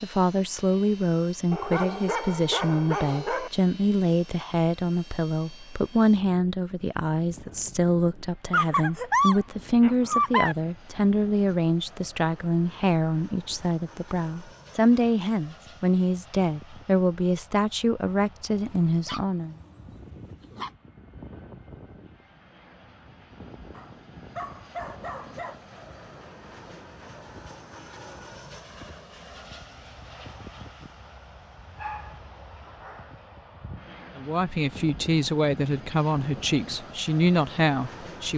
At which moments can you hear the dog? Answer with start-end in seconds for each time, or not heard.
1.5-3.5, 8.5-10.6, 18.5-20.7, 23.7-25.6, 31.8-33.2.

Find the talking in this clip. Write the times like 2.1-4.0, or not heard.
0.0-19.6, 34.1-38.3.